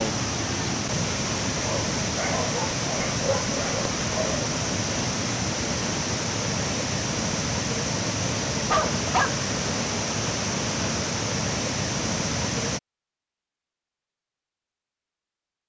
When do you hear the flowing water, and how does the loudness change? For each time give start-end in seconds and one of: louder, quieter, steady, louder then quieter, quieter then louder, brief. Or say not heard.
0.0-12.8 steady.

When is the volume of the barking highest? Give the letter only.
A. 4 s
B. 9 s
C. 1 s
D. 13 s
B.